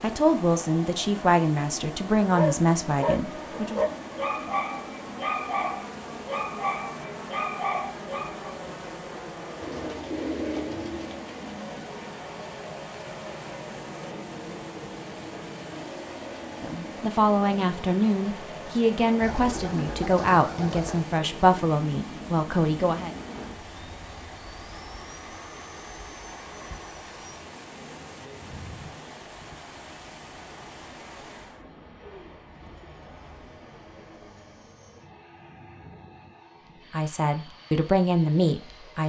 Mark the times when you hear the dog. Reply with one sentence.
The dog can be heard from 2.2 to 8.5 s.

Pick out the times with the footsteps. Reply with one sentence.
The footsteps can't be heard in this clip.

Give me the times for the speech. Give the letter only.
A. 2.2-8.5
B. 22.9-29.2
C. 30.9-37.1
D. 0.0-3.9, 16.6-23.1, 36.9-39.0
D.